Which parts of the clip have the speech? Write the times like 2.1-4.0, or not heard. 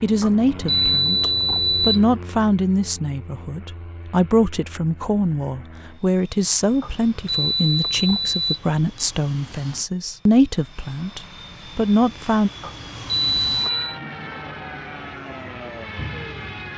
0.0-12.5.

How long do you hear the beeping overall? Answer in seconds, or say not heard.
5 s.